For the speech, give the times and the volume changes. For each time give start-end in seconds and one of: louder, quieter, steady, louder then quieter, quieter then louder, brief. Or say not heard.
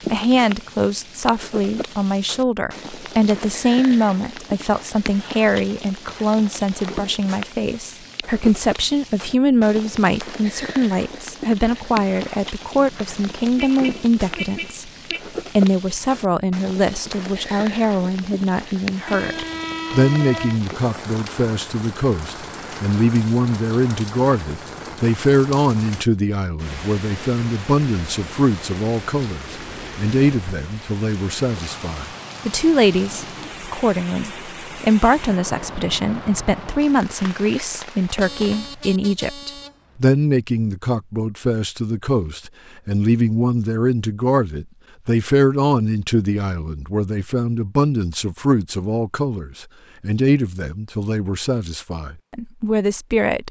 0.1-14.9 steady
15.6-53.4 steady.